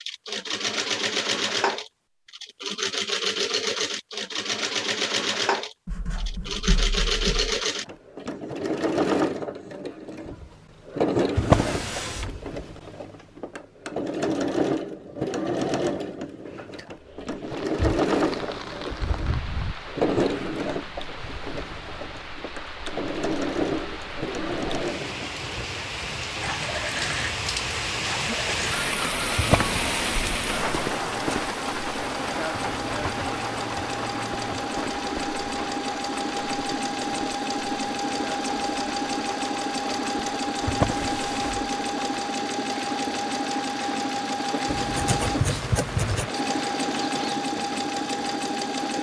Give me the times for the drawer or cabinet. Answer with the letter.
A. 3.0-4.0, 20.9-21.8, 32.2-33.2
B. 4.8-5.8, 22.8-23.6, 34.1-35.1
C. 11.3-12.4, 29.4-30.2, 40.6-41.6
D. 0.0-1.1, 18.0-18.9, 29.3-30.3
C.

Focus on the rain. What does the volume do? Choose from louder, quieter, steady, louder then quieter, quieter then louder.
louder then quieter.